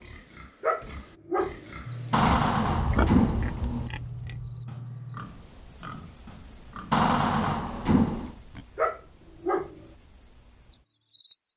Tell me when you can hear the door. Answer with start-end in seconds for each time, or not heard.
2.1-3.9, 6.9-8.3.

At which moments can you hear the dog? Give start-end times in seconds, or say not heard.
0.6-1.8, 8.8-9.8.